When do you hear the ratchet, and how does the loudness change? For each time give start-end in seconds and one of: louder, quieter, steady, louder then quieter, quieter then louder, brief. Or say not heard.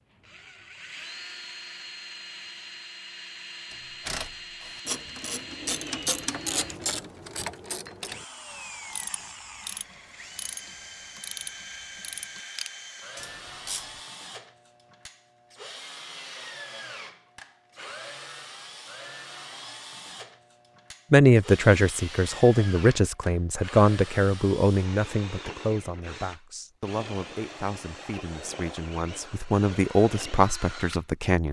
3.7-14.0 quieter.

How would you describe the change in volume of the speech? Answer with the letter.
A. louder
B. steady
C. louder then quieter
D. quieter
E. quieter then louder
E.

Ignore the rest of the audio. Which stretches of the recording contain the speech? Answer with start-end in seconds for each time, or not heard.
21.1-31.4.